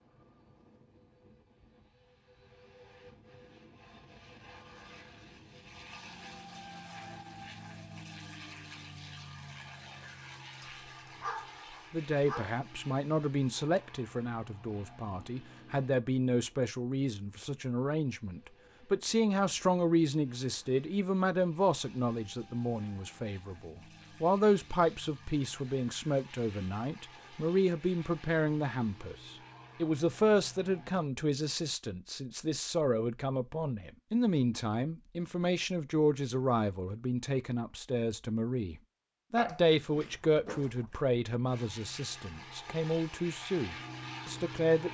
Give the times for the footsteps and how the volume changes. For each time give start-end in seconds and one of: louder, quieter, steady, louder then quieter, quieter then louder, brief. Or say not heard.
not heard.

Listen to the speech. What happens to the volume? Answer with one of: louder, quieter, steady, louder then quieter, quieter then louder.
steady.